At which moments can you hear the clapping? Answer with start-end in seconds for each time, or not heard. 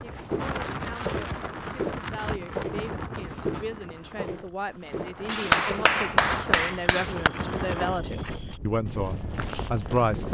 5.2-7.3.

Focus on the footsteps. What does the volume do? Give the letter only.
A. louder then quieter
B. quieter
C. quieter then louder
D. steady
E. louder
B.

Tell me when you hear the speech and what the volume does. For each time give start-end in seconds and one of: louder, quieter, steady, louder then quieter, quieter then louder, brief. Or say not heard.
0.0-10.2 louder.